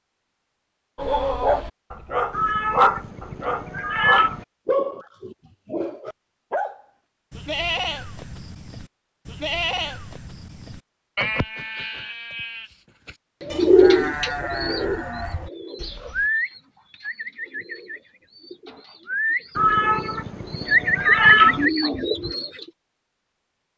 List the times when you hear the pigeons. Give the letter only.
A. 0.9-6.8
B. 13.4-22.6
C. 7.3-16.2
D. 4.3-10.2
B.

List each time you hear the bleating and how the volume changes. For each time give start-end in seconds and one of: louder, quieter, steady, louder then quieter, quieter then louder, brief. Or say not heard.
7.3-16.2 steady.